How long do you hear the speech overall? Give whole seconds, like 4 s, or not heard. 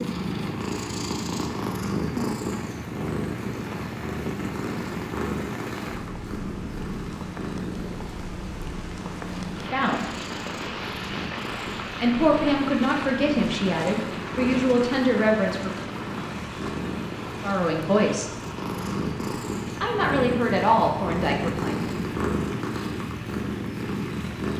7 s.